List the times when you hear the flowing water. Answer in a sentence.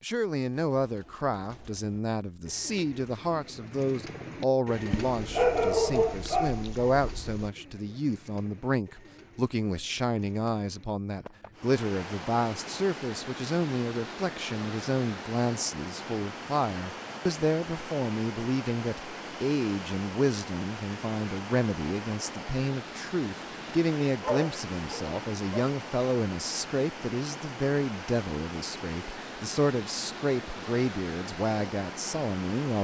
You can hear the flowing water from 11.5 to 32.7 s.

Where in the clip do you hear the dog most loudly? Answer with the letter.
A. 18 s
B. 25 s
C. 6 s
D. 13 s
C.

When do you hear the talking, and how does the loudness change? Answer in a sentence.
You can hear the talking from 0.0 to 32.7 s, at a steady volume.